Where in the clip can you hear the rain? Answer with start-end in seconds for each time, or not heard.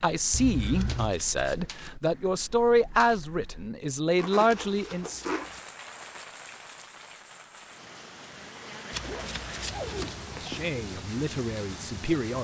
5.3-12.3.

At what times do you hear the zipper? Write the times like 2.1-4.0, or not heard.
0.3-1.1, 4.2-5.5, 9.0-10.8.